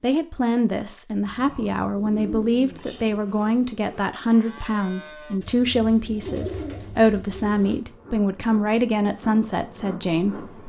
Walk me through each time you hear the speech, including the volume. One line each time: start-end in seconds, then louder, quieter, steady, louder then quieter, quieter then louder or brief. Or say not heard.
0.0-10.6 steady.